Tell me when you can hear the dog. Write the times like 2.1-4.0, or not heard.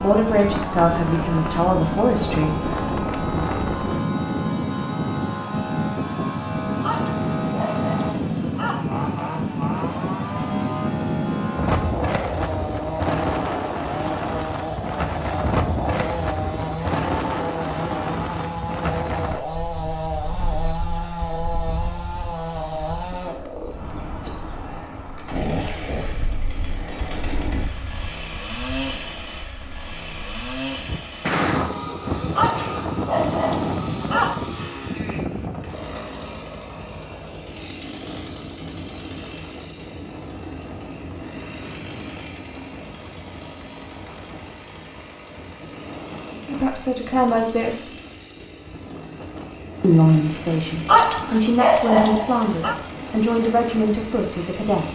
6.8-8.8, 32.4-34.4, 50.9-52.8.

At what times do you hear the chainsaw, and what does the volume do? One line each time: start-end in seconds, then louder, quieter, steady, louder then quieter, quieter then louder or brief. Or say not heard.
0.0-54.9 quieter.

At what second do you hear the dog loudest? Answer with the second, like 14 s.
51 s.